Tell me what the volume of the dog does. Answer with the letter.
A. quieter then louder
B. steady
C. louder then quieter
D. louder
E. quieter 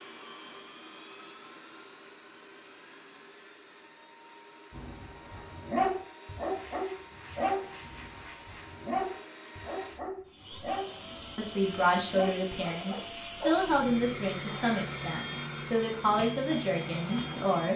E.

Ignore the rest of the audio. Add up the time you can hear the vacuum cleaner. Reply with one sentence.
You can hear the vacuum cleaner for 18 seconds altogether.